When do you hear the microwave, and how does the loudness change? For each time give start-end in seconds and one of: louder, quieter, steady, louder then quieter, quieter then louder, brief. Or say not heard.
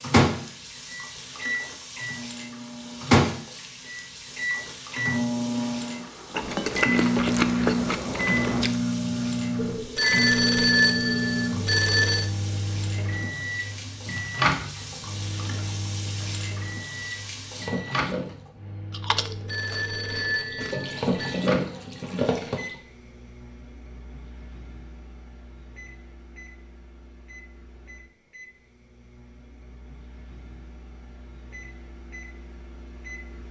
0.0-33.4 quieter.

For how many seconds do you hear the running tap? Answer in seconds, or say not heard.
21 s.